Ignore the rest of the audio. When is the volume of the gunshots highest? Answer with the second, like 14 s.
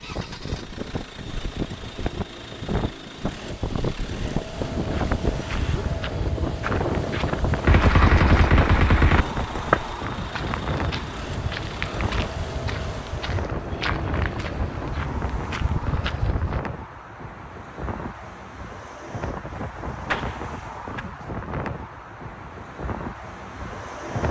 8 s.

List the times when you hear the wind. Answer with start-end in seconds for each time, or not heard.
0.0-24.2.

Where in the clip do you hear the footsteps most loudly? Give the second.
10 s.